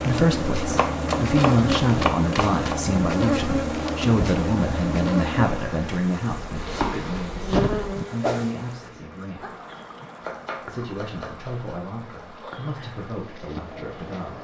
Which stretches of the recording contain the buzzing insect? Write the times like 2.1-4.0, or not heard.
0.0-14.3.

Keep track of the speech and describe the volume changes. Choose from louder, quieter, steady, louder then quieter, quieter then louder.
quieter.